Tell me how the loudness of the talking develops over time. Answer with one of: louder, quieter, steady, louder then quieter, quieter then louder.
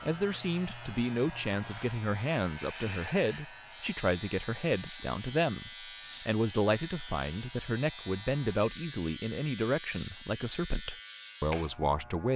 steady.